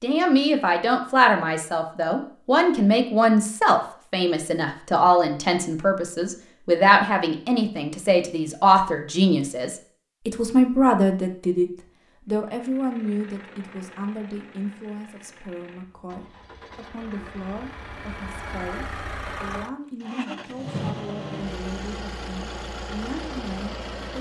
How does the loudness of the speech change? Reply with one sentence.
The volume of the speech goes down.